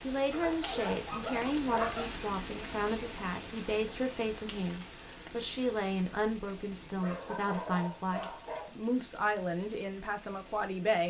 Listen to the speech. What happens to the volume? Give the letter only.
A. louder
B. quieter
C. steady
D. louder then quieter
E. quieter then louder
C.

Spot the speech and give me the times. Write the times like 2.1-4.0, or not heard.
0.0-11.0.